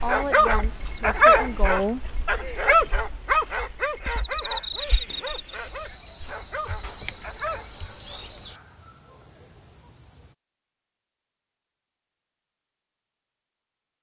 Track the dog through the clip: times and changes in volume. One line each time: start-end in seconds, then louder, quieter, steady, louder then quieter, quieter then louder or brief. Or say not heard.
0.0-8.0 quieter.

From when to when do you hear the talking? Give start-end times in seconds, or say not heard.
0.0-2.1.